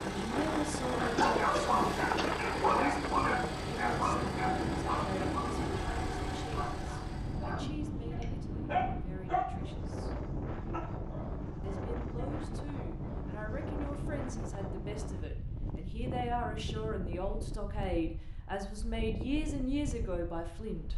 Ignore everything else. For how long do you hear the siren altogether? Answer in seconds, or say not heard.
not heard.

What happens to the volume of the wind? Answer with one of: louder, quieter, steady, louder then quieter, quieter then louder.
quieter.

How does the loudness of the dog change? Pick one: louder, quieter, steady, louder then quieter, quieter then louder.
quieter.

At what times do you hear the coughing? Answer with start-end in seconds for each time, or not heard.
1.1-2.3.